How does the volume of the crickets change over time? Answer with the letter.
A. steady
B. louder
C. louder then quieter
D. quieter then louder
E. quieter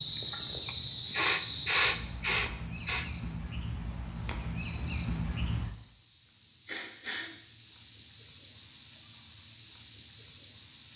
B.